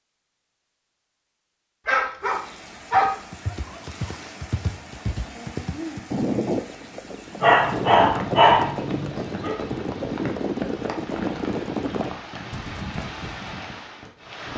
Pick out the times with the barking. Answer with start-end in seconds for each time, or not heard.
1.9-3.1, 7.4-9.6.